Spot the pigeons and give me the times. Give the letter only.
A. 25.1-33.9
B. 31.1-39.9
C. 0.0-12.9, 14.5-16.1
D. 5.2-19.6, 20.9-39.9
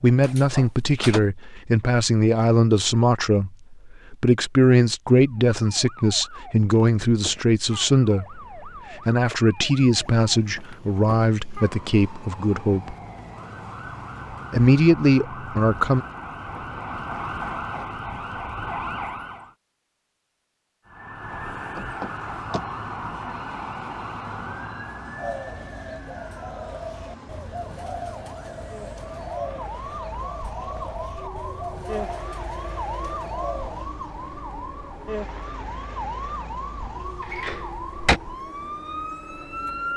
A.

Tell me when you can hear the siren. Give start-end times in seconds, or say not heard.
5.2-19.6, 20.9-39.9.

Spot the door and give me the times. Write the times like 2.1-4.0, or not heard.
0.2-1.2, 21.8-22.6, 37.2-38.2.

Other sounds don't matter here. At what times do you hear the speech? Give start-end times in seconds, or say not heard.
0.0-12.9, 14.5-16.1.